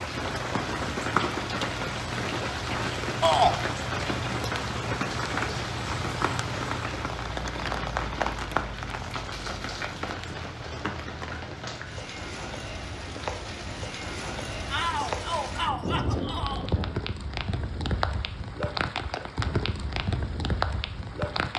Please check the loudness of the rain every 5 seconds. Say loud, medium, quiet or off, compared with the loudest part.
loud, loud, medium, loud, loud.